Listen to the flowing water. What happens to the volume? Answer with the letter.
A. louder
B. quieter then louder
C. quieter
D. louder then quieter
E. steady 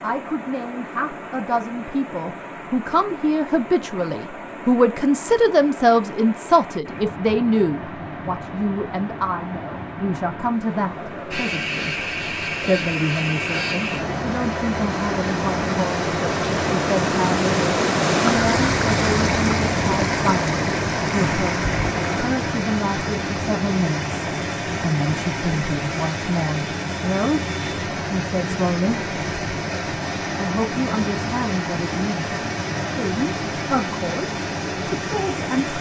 D.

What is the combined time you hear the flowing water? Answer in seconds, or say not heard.
36 s.